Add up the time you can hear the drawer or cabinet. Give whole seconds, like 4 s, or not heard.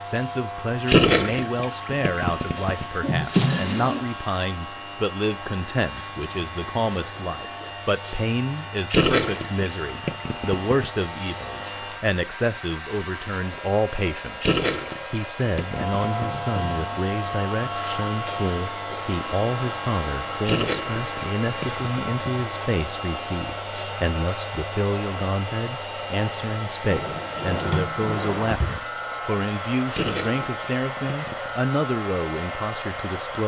4 s.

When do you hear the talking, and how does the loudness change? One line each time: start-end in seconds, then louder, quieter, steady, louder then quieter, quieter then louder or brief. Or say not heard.
0.0-33.4 steady.